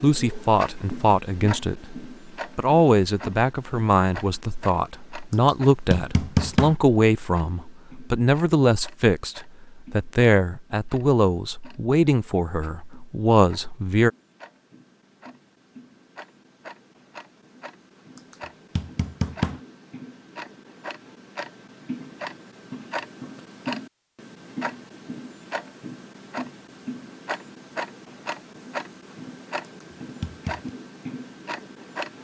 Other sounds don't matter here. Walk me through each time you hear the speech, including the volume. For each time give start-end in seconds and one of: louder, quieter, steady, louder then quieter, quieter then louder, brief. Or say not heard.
0.0-14.1 steady.